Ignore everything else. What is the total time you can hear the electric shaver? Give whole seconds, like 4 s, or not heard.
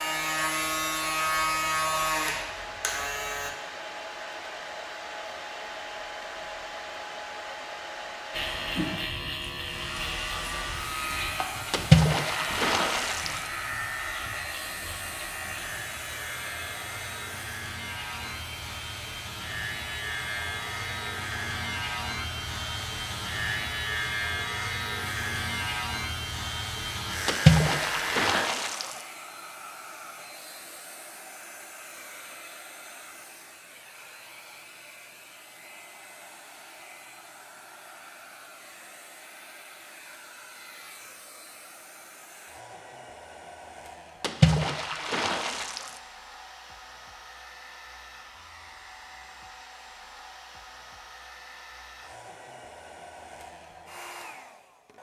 24 s.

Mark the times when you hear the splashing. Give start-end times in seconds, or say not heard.
11.7-13.5, 27.2-29.1, 44.2-46.0.